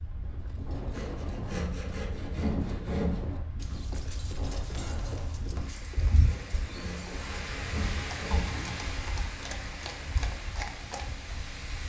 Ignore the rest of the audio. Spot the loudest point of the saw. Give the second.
3 s.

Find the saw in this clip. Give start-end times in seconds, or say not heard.
0.9-3.2, 6.2-8.7.